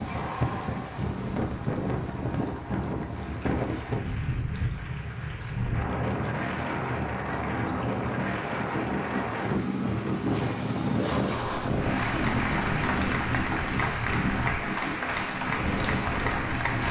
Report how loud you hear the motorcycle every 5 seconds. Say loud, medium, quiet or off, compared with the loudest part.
medium, loud, loud, medium.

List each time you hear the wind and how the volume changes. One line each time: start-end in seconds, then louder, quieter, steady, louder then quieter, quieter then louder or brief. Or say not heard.
0.0-16.8 steady.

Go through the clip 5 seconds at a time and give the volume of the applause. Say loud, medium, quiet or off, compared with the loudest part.
quiet, quiet, loud, loud.